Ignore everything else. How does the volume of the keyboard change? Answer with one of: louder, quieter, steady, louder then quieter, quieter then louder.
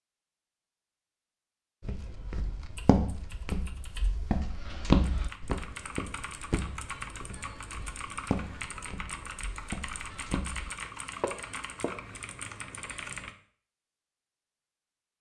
louder.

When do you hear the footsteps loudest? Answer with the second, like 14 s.
5 s.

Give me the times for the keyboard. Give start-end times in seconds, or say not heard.
2.0-13.3.